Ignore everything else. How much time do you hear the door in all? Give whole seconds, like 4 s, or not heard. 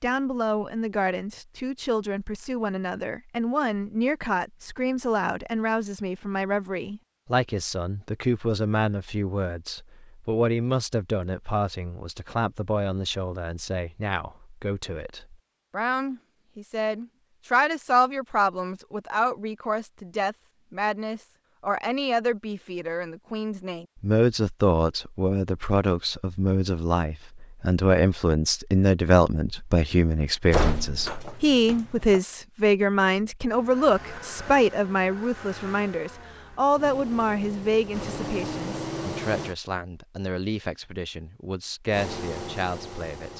2 s.